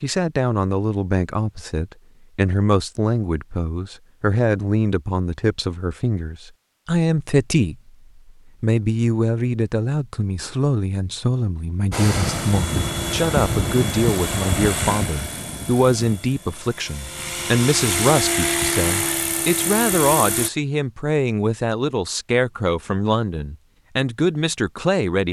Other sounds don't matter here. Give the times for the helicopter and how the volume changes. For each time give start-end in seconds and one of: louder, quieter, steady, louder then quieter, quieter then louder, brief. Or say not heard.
11.9-20.5 quieter then louder.